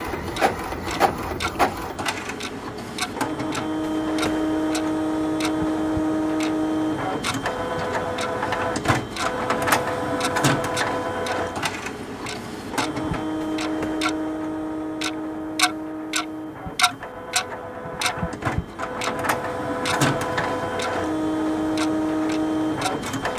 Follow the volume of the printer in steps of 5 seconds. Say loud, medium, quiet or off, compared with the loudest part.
loud, loud, loud, medium, loud.